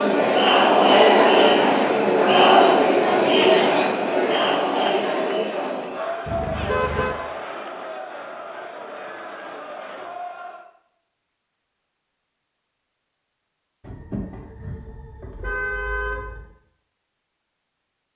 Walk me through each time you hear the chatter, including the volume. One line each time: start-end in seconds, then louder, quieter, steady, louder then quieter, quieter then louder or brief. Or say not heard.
0.0-10.7 quieter.